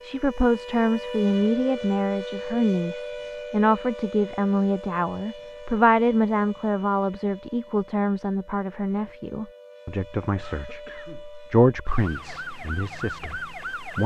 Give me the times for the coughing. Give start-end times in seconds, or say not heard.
10.3-11.2.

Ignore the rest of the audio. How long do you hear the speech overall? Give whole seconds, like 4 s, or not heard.
14 s.